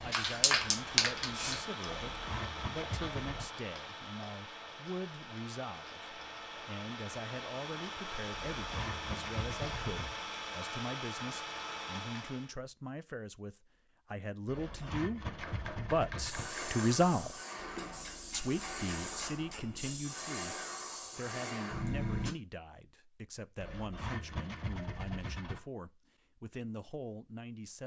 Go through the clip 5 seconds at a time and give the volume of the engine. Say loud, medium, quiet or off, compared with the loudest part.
loud, loud, loud, off, off, off.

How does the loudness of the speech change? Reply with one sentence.
The volume of the speech goes up, then down.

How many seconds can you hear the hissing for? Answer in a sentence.
The hissing can be heard for 8 seconds in total.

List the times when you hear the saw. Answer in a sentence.
The saw can be heard from 1.9 to 3.5 s, from 8.3 to 10.2 s, from 14.4 to 16.5 s and from 23.6 to 25.6 s.